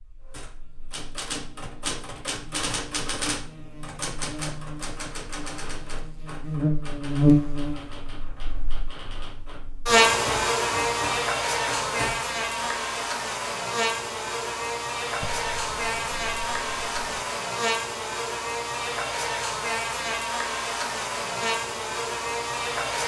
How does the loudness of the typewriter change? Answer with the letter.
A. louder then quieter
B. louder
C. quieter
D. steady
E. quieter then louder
E.